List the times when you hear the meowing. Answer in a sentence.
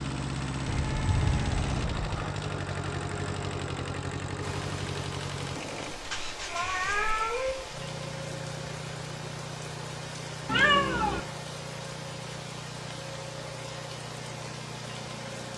The meowing can be heard from 0.8 to 2.1 s, from 6.0 to 7.5 s and from 10.4 to 11.2 s.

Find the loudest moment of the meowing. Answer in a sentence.
The loudest moment of the meowing is at 11 seconds.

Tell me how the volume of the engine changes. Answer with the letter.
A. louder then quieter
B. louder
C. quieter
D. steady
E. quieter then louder
C.